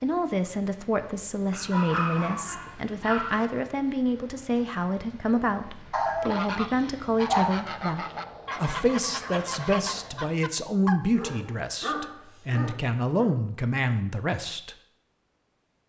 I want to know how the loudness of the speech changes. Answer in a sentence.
The volume of the speech stays about the same.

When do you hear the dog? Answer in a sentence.
The dog can be heard from 1.5 to 3.5 s, from 5.9 to 7.5 s and from 11.0 to 13.3 s.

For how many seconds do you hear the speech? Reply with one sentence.
The speech can be heard for 15 seconds in total.